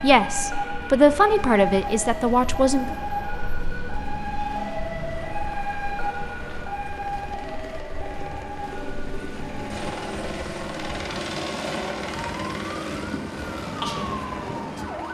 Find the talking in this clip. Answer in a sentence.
You can hear the talking from 0.0 to 3.0 s.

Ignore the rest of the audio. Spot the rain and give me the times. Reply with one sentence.
You can't hear the rain here.